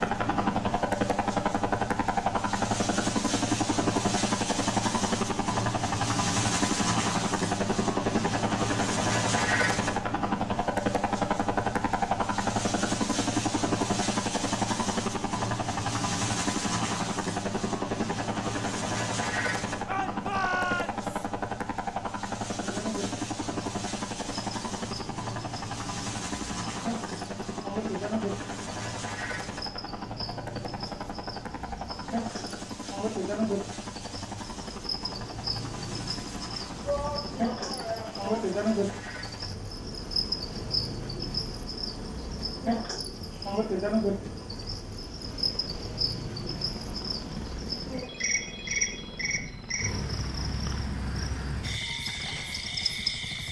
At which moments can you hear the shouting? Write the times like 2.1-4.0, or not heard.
19.9-21.1, 36.8-38.3.